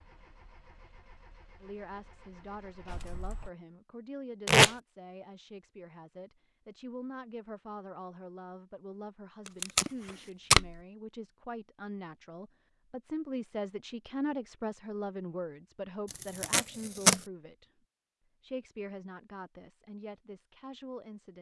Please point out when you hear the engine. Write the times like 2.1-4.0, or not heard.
0.0-3.5.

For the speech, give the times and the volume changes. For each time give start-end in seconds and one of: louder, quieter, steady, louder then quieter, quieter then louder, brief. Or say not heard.
1.6-17.6 louder
18.4-21.3 brief.